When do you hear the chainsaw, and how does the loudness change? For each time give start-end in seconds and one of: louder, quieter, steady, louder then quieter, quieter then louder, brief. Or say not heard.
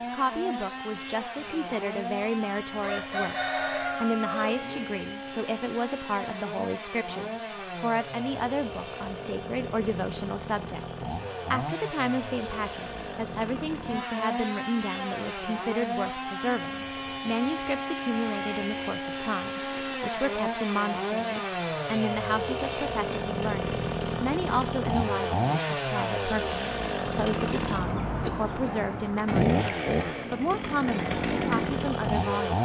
0.0-32.6 louder.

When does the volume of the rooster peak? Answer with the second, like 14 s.
4 s.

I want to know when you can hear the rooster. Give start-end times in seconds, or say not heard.
1.9-4.8.